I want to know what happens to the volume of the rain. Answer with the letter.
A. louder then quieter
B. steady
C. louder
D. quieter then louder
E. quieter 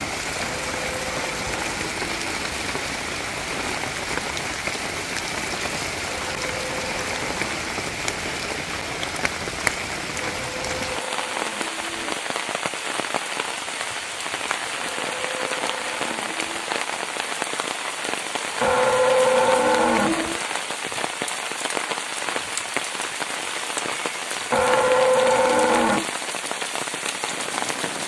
B.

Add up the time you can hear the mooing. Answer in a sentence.
The mooing can be heard for 11 seconds in total.